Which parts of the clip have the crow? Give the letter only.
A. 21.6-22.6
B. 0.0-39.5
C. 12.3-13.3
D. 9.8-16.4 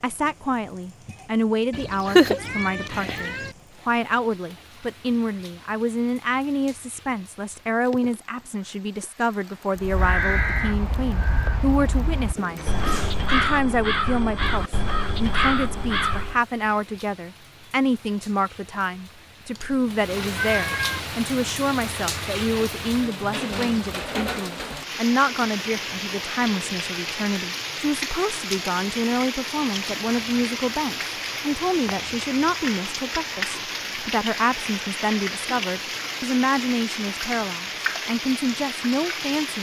D.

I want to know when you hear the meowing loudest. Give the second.
2 s.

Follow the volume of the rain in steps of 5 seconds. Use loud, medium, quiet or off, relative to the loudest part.
quiet, quiet, quiet, quiet, loud, loud, loud, loud.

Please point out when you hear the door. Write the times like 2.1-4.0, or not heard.
12.3-13.3.